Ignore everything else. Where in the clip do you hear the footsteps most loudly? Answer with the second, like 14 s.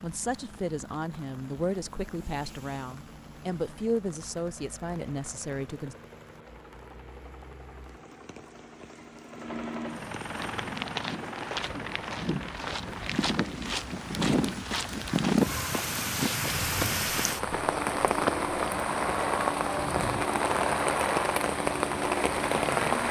15 s.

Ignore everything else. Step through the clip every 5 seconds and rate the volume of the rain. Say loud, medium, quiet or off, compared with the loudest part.
quiet, quiet, quiet, loud, loud.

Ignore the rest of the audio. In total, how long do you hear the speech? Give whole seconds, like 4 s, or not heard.
6 s.